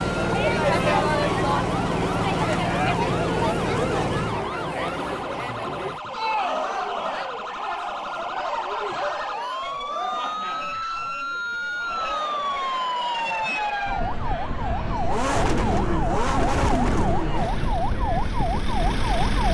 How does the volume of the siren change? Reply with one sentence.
The loudness of the siren goes up.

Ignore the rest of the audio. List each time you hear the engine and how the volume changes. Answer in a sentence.
The engine can be heard from 0.0 to 4.5 s, at a steady volume; and from 14.9 to 19.5 s, getting quieter then louder.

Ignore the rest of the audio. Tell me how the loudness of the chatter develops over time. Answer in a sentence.
The volume of the chatter goes down.